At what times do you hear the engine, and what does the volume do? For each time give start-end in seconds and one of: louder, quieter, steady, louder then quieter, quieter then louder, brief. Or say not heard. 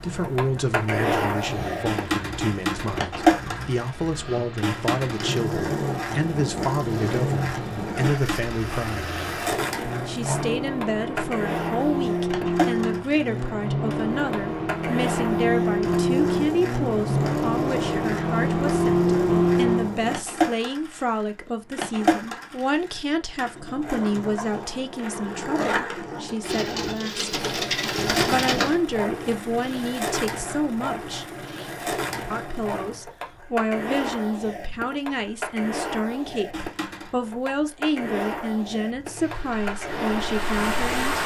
0.0-20.1 louder
39.0-41.2 brief.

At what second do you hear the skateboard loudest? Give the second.
3 s.